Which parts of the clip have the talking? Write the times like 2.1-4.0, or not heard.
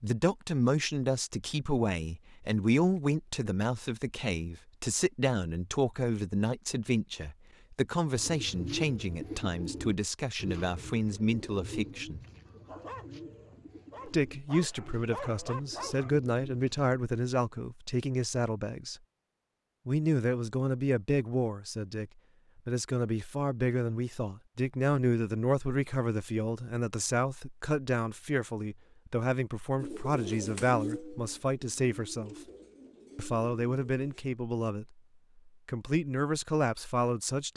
0.0-12.2, 14.1-19.0, 19.9-32.4, 33.1-34.9, 35.5-37.5.